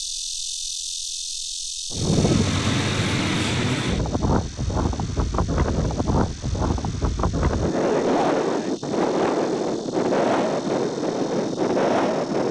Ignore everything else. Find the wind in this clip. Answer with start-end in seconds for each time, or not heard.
1.9-12.4.